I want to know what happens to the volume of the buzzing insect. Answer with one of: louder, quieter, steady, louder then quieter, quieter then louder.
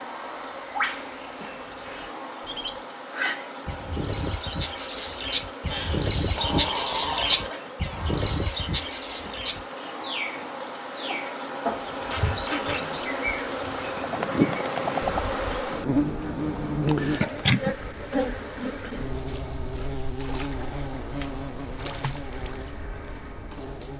louder then quieter.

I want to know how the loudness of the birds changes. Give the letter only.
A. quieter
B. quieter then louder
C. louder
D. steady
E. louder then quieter
E.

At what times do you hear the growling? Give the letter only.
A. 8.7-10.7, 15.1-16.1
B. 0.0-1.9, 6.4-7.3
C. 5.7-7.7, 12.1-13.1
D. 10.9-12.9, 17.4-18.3
C.